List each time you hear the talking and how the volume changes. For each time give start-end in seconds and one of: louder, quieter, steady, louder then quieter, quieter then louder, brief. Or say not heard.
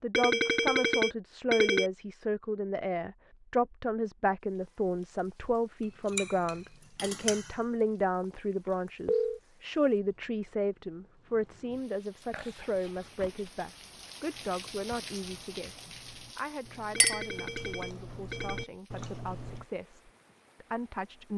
0.0-21.3 quieter.